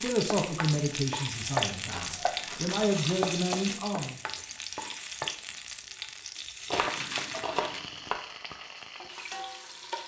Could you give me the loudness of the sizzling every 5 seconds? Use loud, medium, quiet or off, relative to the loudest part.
loud, medium.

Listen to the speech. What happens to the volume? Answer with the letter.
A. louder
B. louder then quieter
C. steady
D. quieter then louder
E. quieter
D.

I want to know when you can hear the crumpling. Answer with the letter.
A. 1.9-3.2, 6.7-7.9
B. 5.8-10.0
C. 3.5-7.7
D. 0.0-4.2
A.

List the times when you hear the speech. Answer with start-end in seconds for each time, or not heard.
0.0-4.2.